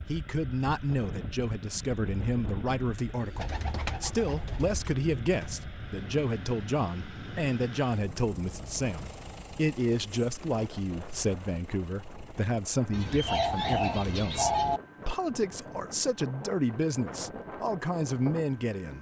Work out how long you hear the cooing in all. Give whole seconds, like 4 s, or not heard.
4 s.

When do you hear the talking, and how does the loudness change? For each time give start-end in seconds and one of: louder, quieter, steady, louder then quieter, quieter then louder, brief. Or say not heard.
0.1-18.9 steady.